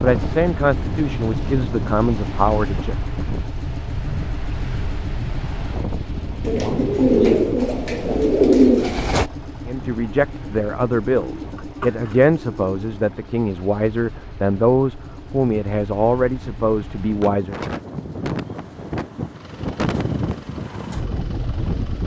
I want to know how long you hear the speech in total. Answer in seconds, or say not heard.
11 s.